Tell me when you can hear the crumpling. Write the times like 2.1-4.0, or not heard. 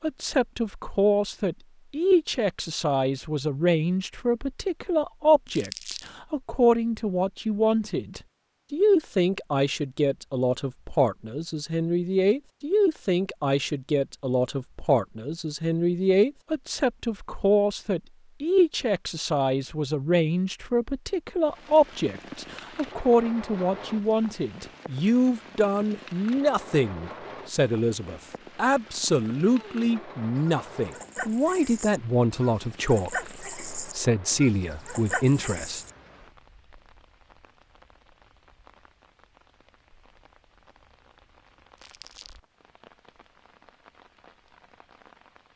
5.5-6.1, 41.8-42.4.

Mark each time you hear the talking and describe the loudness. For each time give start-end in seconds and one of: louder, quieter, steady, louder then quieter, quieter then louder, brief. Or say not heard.
0.0-35.8 steady.